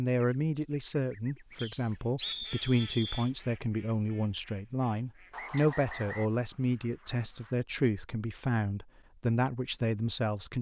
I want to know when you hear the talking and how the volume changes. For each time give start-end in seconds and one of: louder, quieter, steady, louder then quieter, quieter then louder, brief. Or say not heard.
0.0-10.5 steady.